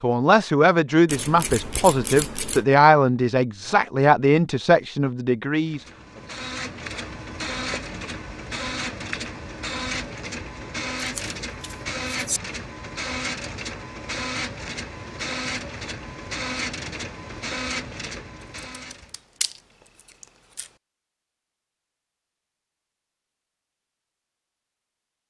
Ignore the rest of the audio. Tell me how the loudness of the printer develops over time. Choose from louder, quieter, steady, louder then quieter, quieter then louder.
steady.